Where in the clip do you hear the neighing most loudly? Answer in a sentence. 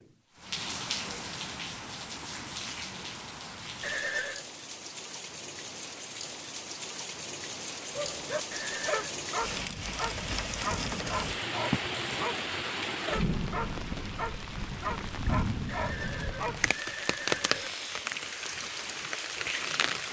The loudest moment of the neighing is at 4 seconds.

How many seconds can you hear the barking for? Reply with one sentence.
The barking can be heard for 9 seconds in total.